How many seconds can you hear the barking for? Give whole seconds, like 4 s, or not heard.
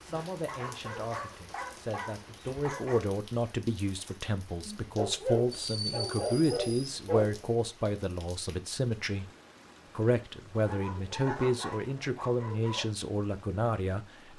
7 s.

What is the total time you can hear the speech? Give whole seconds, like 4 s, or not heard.
14 s.